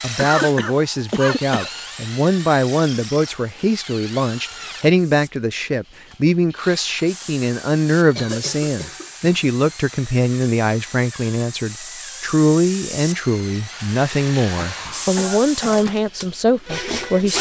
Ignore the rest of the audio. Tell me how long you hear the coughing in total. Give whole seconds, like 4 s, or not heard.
4 s.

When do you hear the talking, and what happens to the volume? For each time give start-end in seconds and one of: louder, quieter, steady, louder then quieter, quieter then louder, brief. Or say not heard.
0.0-17.3 steady.